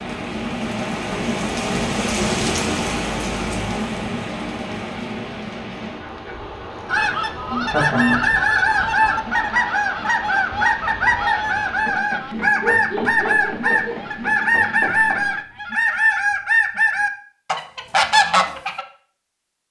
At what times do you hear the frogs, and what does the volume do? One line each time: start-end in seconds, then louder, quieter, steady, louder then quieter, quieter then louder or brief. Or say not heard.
not heard.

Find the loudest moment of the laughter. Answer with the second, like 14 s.
8 s.